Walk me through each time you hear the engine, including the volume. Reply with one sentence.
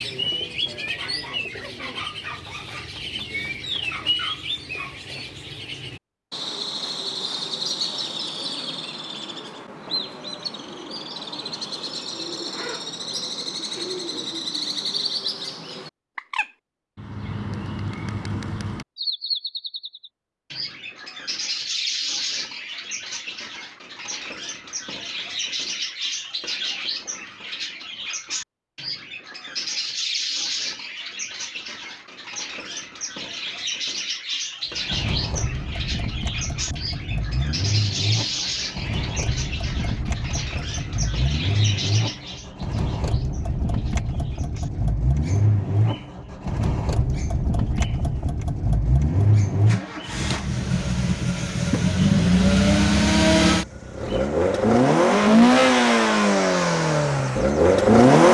The engine can be heard from 34.7 to 58.2 s, getting louder.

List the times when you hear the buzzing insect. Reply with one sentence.
You can't hear the buzzing insect here.